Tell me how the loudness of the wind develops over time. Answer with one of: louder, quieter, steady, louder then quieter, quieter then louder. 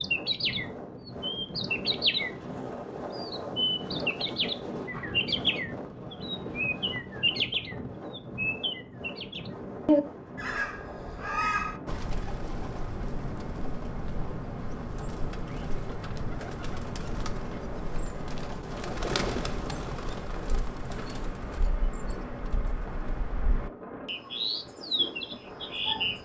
quieter.